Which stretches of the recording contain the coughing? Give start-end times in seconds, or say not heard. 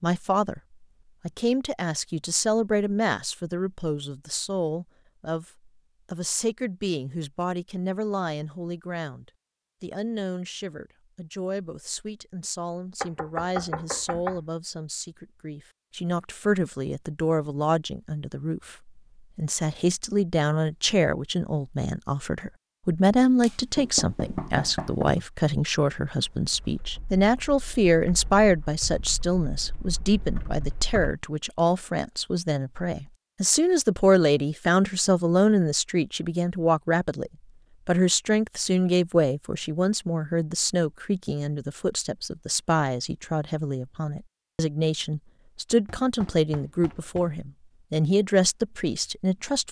not heard.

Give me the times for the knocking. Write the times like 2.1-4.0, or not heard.
13.0-14.4, 23.4-25.2, 45.9-47.4.